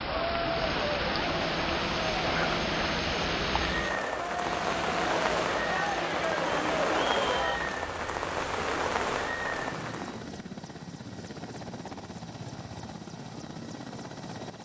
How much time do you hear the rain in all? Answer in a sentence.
The rain can be heard for 10 seconds in total.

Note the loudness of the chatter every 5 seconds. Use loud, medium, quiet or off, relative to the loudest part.
loud, loud, off.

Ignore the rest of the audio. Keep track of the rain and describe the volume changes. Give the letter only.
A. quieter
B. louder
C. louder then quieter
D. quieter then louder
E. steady
E.